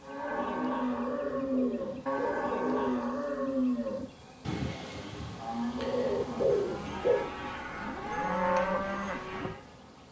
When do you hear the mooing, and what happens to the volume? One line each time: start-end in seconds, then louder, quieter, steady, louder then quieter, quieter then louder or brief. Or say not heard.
0.0-9.6 quieter then louder.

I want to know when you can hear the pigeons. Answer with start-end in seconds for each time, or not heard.
1.1-3.0, 5.8-7.3.